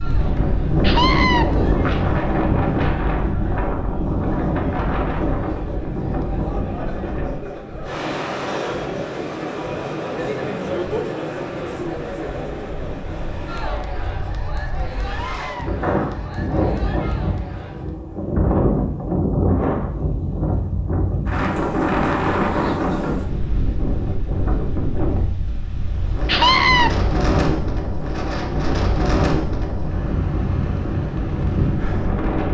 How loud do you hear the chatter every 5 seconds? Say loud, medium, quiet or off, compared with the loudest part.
medium, loud, loud, medium, off, off, off.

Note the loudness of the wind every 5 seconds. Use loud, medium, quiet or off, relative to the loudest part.
loud, medium, quiet, loud, loud, loud, loud.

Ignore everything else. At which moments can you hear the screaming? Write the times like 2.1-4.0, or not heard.
0.8-1.4, 15.2-15.7, 26.2-26.9.